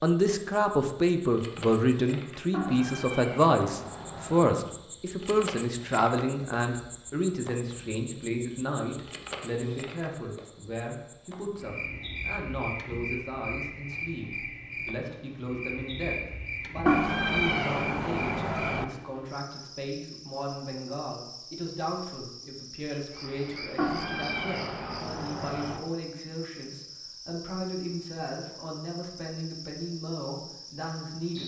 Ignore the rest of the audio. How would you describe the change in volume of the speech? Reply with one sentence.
The volume of the speech goes down.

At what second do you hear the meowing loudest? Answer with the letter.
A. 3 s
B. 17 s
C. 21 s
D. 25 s
B.